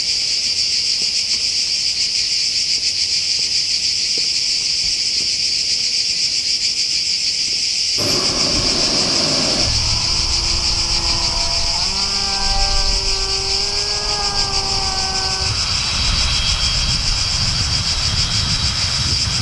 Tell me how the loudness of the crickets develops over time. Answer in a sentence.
The loudness of the crickets stays about the same.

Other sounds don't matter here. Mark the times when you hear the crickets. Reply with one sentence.
You can hear the crickets from 0.0 to 19.3 s.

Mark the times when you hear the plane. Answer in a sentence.
You can hear the plane from 8.0 to 19.3 s.